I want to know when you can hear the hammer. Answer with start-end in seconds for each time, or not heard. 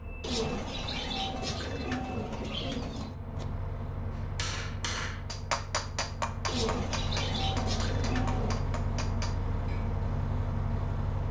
4.2-9.9.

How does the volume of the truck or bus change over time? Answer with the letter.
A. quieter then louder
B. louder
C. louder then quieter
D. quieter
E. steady
B.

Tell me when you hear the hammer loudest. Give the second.
6 s.